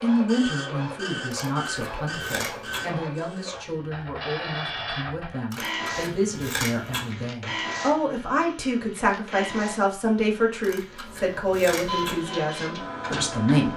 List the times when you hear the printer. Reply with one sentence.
The printer can be heard from 0.0 to 13.7 s.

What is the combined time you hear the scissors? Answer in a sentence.
You can hear the scissors for 5 seconds altogether.